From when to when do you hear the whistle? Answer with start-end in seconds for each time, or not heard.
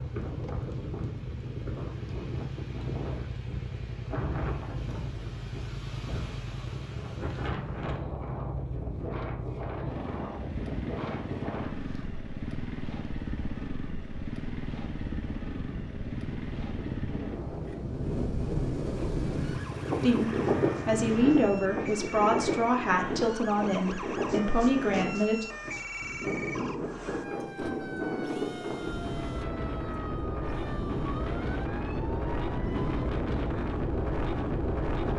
not heard.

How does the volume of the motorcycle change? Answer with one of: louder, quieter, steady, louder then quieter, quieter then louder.
steady.